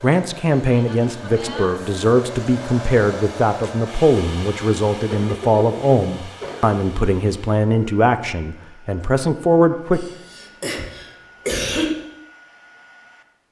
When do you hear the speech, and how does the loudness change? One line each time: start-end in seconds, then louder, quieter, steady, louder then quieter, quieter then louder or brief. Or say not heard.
0.0-10.1 steady.